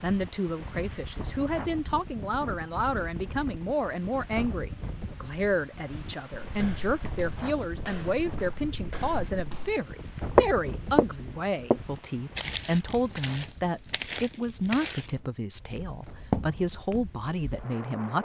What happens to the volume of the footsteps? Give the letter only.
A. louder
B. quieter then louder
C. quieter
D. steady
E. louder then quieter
E.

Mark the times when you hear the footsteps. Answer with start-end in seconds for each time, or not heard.
6.4-9.7, 10.3-17.6.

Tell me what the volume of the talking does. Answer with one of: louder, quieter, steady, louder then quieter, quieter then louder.
steady.